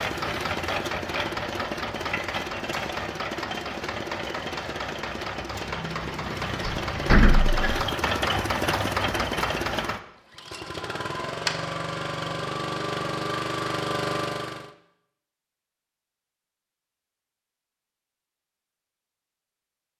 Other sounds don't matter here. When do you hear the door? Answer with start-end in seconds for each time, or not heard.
6.7-7.8.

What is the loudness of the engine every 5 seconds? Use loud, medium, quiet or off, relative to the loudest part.
loud, loud, loud, off.